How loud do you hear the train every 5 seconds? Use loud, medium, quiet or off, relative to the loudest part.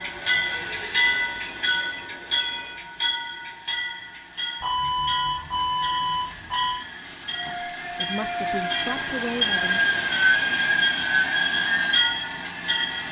medium, medium, loud.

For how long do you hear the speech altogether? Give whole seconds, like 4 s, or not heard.
2 s.